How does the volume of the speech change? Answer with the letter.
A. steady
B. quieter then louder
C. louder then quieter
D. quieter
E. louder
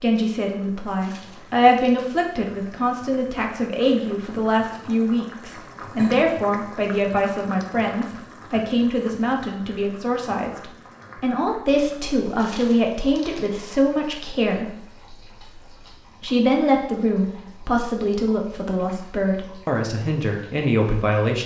A.